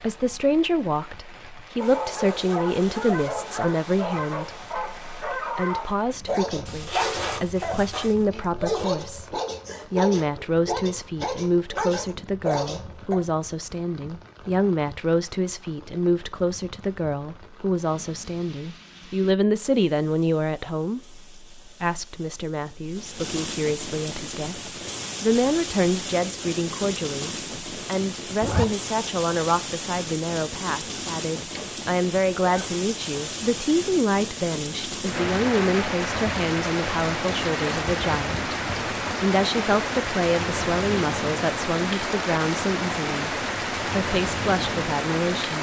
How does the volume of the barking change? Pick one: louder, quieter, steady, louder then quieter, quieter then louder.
steady.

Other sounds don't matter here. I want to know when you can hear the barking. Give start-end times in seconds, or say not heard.
1.8-13.2.